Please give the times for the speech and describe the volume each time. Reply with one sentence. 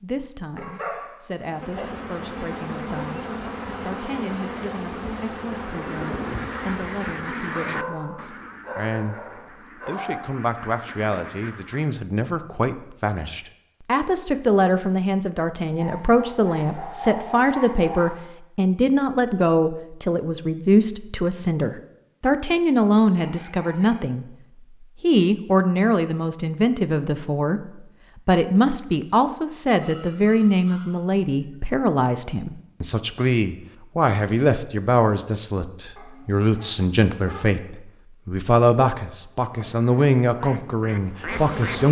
You can hear the speech from 0.0 to 24.2 s, getting louder; and from 25.0 to 41.8 s, at a steady volume.